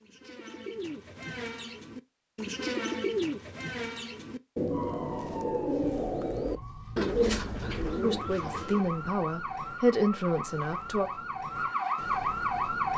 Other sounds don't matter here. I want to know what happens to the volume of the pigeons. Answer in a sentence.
The loudness of the pigeons goes up.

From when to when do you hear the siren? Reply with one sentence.
The siren can be heard from 4.7 to 12.9 s.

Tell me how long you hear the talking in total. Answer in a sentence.
The talking can be heard for 3 seconds in total.